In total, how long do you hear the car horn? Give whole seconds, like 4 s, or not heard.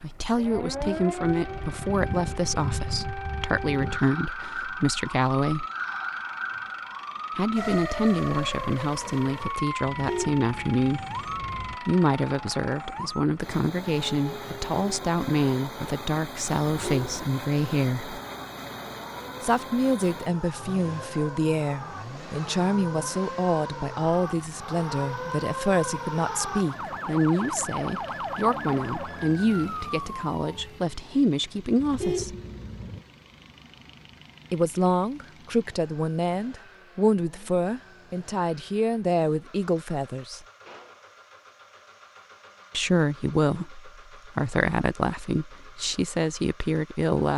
4 s.